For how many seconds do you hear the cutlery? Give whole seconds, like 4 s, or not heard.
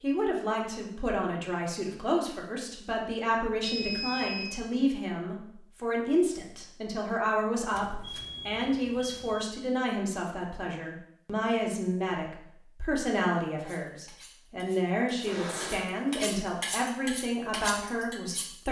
5 s.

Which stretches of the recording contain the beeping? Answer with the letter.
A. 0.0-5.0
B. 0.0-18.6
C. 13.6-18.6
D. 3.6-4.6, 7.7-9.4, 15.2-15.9
D.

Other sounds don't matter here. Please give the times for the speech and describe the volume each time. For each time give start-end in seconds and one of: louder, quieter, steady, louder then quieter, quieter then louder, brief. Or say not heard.
0.0-18.6 steady.